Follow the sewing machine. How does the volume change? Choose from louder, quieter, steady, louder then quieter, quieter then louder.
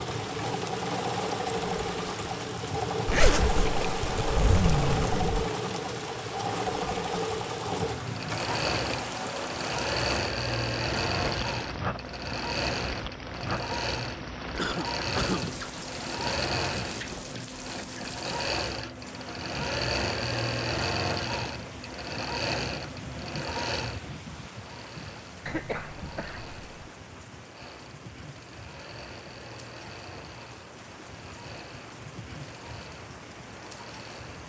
quieter.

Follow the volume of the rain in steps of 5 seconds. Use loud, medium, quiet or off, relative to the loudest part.
loud, loud, loud, loud, medium, medium, medium.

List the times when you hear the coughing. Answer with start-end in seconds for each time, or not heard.
14.6-15.6, 25.4-26.9.